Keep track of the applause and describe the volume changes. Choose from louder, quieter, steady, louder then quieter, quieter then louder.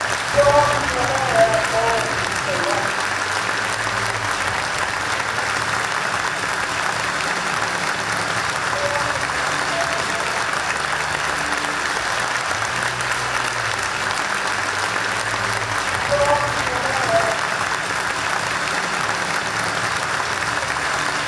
steady.